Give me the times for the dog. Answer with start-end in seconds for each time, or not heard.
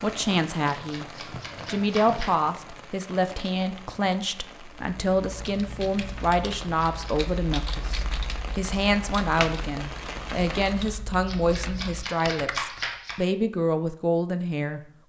not heard.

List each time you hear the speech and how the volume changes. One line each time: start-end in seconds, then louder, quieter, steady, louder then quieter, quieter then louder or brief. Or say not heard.
0.0-1.1 brief
1.6-14.8 steady.